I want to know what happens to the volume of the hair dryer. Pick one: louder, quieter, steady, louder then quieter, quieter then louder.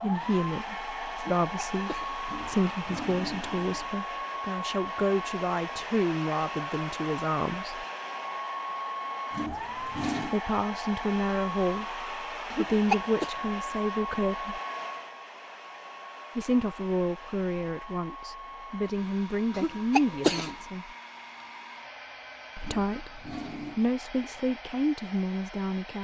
quieter.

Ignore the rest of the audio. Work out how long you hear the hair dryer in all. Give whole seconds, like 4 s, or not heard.
26 s.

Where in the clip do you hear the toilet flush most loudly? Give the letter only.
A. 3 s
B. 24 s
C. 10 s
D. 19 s
C.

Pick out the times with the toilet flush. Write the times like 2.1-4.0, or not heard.
2.2-3.9, 9.3-10.3, 22.6-23.8.